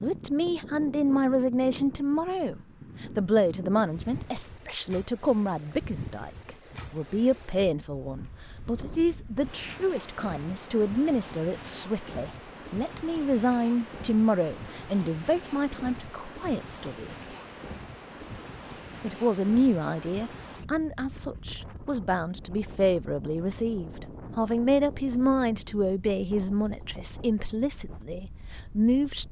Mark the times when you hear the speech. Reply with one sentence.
The speech can be heard from 0.0 to 17.1 s and from 19.0 to 29.2 s.